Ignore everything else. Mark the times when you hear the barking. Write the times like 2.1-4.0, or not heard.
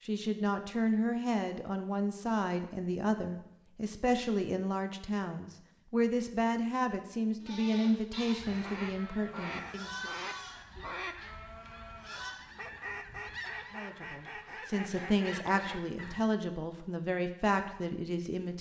not heard.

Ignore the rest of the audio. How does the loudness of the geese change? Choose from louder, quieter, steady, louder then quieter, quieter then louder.
steady.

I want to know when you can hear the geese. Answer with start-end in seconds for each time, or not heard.
8.3-16.2.